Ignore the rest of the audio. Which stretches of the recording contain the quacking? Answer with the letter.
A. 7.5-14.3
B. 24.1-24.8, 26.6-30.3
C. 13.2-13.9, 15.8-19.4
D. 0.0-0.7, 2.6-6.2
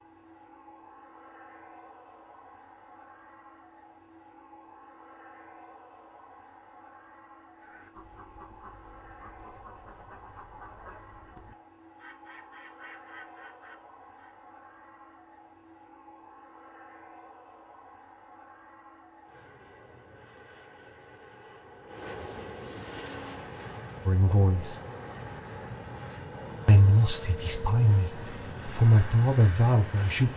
A.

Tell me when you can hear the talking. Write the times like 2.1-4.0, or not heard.
24.1-24.8, 26.6-30.3.